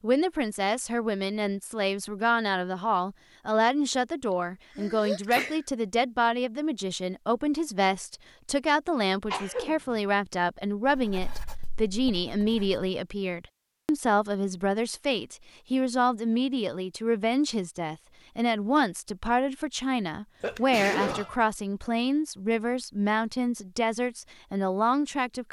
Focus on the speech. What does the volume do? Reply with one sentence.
The volume of the speech stays about the same.